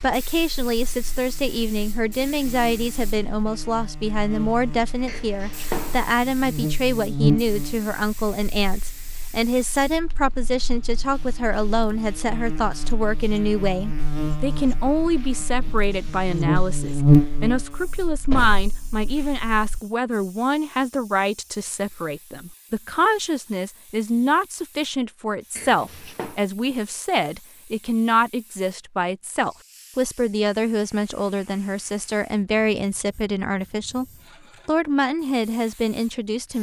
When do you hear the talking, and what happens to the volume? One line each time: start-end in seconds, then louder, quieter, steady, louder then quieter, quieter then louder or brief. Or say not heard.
0.0-34.0 steady
34.6-36.5 brief.